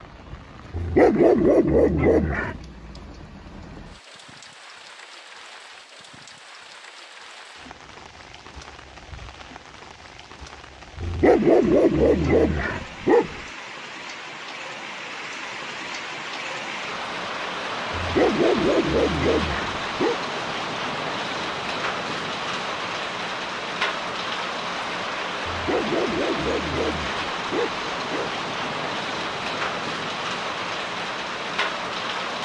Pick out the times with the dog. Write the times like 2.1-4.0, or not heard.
0.7-2.6, 11.0-13.4, 17.9-20.2, 25.4-28.3.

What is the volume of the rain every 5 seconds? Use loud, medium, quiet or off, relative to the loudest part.
quiet, quiet, medium, loud, loud, loud, loud.